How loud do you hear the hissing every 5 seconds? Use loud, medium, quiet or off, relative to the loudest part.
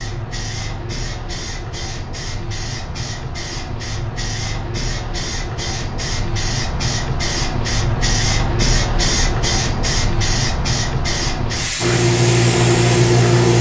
medium, loud, loud.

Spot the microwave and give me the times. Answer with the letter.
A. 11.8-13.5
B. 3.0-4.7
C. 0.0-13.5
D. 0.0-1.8
A.